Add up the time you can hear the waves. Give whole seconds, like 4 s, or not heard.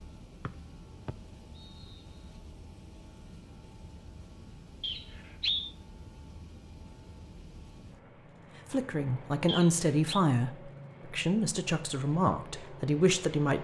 not heard.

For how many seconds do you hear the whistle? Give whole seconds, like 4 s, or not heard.
3 s.